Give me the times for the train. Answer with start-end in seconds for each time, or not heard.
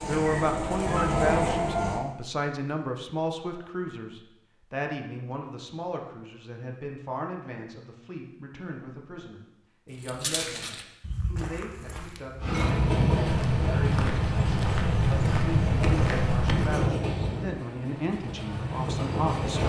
0.0-2.0, 12.4-19.6.